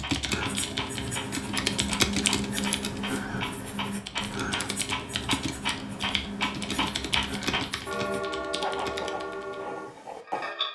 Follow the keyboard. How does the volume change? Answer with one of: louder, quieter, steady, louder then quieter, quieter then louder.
quieter.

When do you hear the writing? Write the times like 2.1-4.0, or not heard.
0.2-10.5.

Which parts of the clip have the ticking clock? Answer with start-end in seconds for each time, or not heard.
0.0-10.6.